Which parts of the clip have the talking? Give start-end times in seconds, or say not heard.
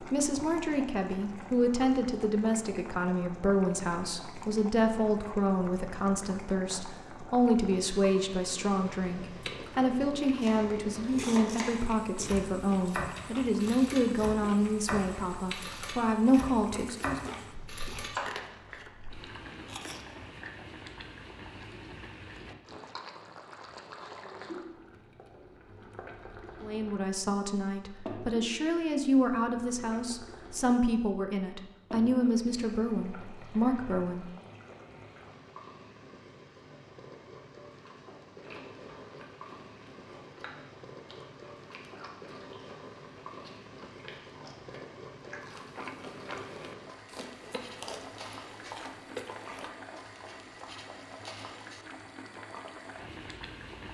0.0-17.3, 26.6-34.2.